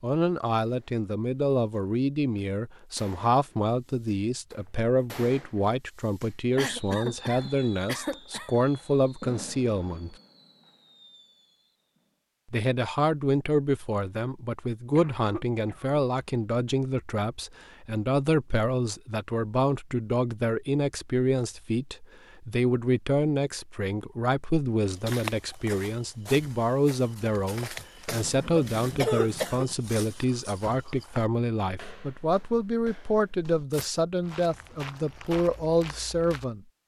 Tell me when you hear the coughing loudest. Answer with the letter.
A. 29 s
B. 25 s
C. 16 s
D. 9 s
A.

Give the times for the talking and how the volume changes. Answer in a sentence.
You can hear the talking from 0.0 to 10.2 s, at a steady volume; and from 12.5 to 36.6 s, at a steady volume.